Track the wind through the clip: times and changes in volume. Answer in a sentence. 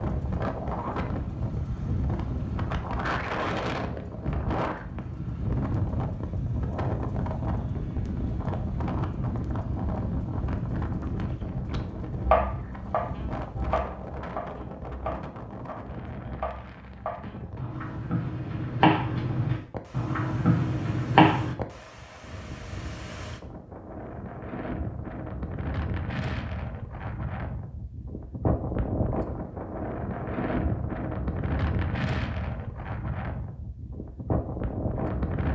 You can hear the wind from 0.0 to 35.5 s, getting quieter then louder.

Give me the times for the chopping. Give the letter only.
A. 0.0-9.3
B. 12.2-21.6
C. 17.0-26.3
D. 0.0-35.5
B.